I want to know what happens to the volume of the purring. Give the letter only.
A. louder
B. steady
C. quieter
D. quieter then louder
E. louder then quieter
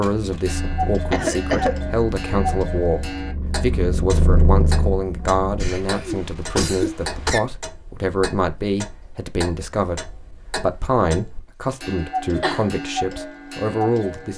A.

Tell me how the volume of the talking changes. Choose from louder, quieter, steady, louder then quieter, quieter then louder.
steady.